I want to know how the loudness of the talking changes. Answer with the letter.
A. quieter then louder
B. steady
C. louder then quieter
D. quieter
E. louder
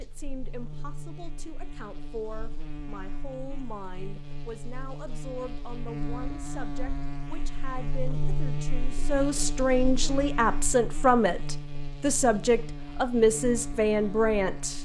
E.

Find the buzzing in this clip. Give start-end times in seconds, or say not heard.
0.0-14.8.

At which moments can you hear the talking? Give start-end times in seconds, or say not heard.
0.0-14.8.